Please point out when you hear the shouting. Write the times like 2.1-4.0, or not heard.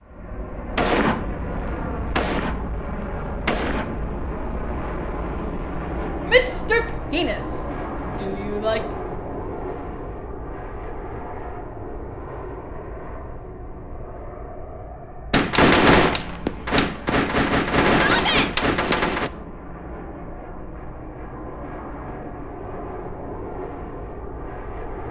6.3-7.6, 8.2-8.8, 17.9-18.5.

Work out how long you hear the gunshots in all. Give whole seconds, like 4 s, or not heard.
7 s.